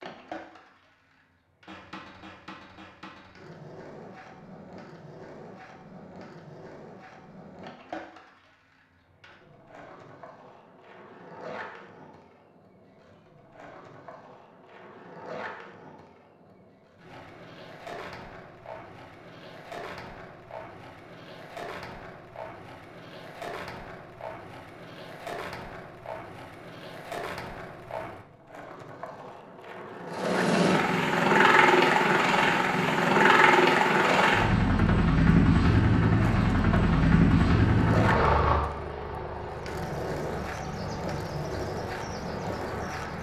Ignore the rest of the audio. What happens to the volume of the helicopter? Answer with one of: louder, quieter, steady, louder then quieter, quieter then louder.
quieter.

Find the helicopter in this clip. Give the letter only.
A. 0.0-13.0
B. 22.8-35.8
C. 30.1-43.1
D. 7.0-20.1
C.